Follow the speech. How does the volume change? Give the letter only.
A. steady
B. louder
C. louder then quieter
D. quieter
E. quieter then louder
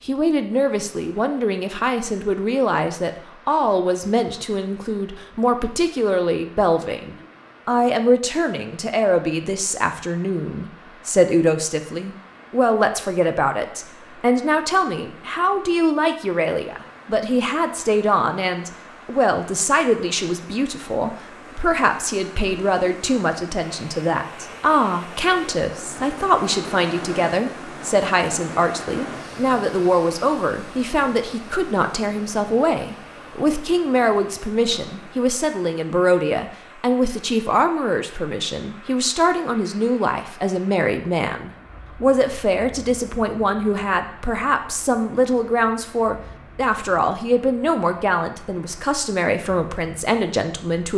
A.